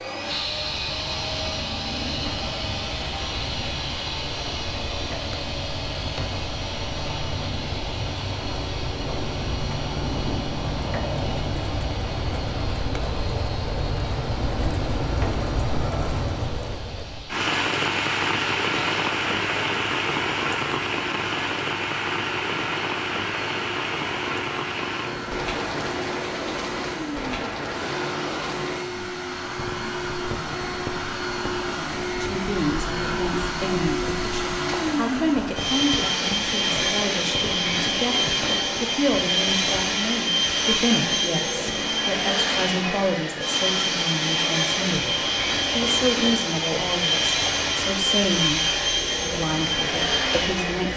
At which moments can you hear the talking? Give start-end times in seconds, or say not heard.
32.2-50.9.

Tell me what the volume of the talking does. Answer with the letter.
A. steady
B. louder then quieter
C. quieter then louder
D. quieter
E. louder
A.